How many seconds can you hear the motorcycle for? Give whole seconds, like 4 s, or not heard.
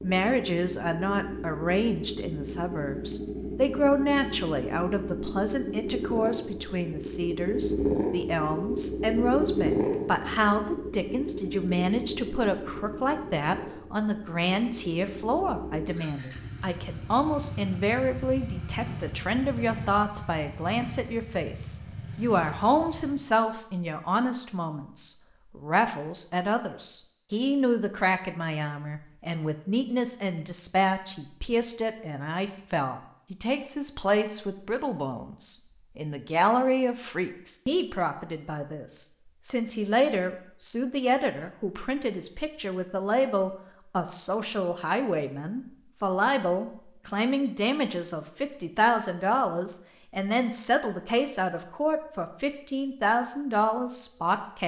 23 s.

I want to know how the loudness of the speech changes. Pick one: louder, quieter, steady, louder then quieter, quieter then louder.
steady.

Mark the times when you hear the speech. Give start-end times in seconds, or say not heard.
0.0-54.6.